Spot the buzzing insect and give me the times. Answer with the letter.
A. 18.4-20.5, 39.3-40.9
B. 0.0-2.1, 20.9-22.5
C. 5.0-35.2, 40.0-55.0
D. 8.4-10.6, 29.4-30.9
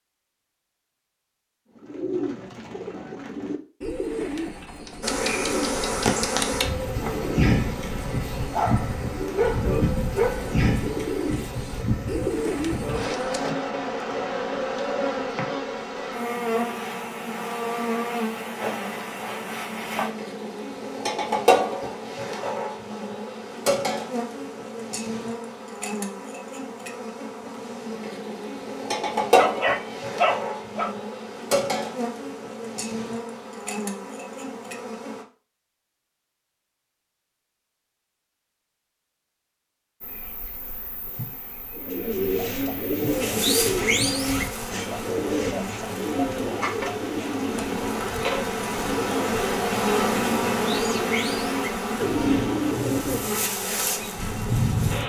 C.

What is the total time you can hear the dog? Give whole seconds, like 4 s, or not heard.
4 s.